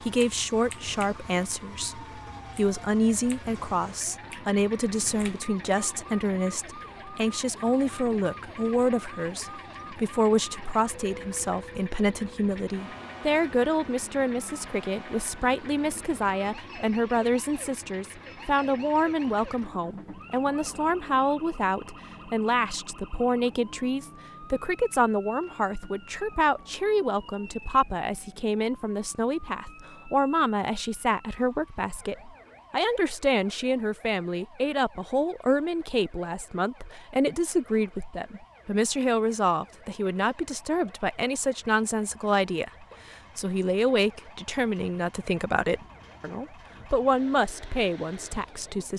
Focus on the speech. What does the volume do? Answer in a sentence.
The volume of the speech stays about the same.